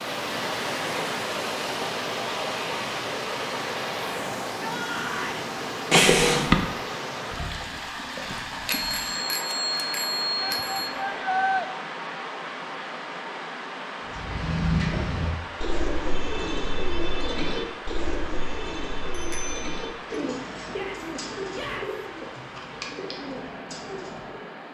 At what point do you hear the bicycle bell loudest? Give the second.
6 s.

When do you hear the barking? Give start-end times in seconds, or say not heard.
not heard.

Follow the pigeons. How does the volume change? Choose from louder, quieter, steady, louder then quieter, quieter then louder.
quieter.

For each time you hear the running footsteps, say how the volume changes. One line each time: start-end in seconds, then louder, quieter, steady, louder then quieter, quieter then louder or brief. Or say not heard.
not heard.